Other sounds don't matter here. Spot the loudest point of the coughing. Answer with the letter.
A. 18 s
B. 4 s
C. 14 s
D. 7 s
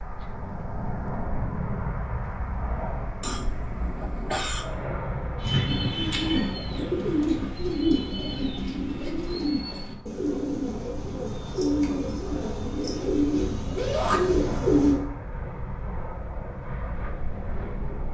B.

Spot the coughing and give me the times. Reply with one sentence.
You can hear the coughing from 3.2 to 4.8 s.